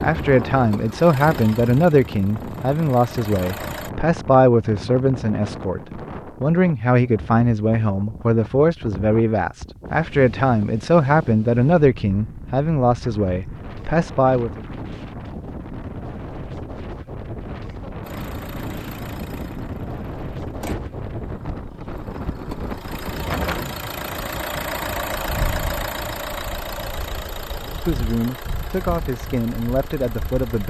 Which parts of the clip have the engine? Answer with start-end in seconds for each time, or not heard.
0.0-3.9, 18.0-30.6.